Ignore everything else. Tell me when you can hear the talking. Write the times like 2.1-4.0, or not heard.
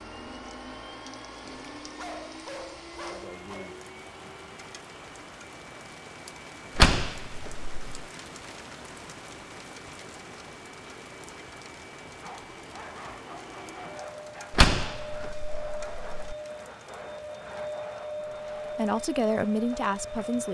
18.7-20.4.